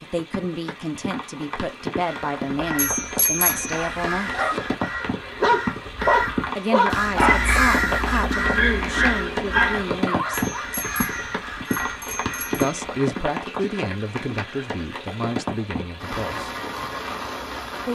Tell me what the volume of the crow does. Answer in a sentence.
The loudness of the crow goes up, then down.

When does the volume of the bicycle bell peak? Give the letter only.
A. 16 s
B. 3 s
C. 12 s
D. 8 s
B.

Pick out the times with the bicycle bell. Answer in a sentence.
You can hear the bicycle bell from 2.8 to 3.9 s and from 10.6 to 12.8 s.